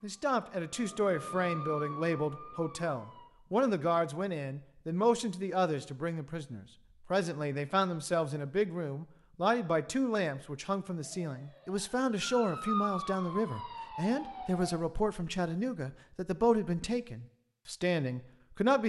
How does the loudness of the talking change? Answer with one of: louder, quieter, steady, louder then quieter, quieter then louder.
steady.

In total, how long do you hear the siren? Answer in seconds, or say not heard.
7 s.